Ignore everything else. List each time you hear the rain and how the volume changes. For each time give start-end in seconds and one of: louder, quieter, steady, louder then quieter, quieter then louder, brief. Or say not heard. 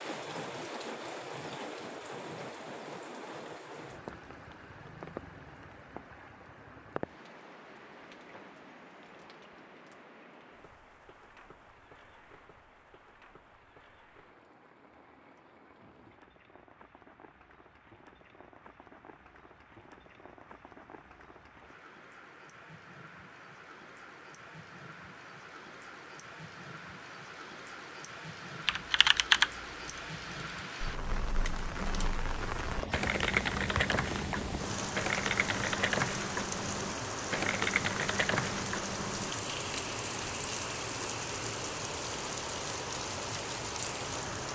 0.0-44.5 quieter then louder.